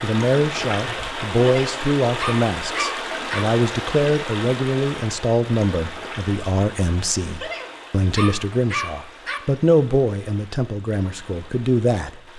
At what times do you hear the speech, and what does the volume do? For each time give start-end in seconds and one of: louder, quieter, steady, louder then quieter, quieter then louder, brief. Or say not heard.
0.0-12.3 steady.